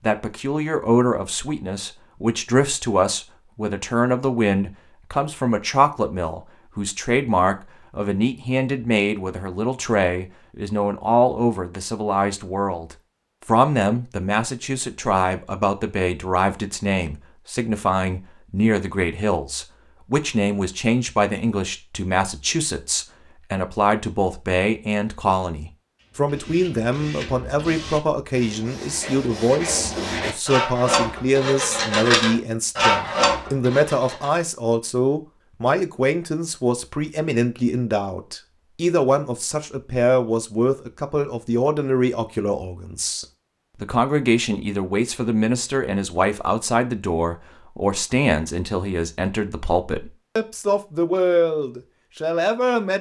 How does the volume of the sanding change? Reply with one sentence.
The volume of the sanding goes up.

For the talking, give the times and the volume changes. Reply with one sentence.
The talking can be heard from 0.0 to 52.9 s, at a steady volume.